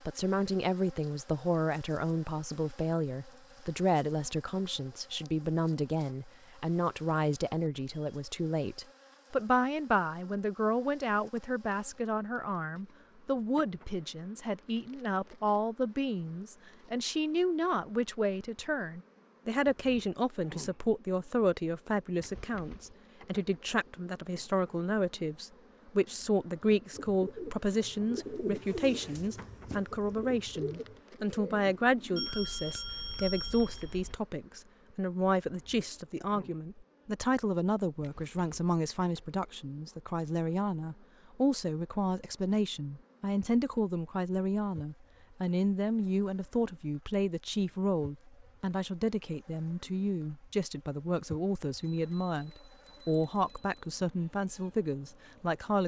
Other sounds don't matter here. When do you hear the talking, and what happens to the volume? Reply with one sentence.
The talking can be heard from 0.1 to 55.8 s, at a steady volume.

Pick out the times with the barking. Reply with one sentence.
The barking can't be heard in this clip.